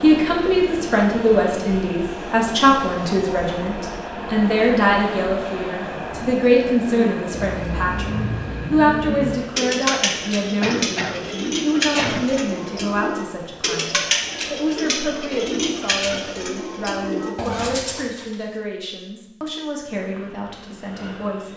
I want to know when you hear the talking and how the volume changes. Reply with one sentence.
The talking can be heard from 0.0 to 21.5 s, getting quieter.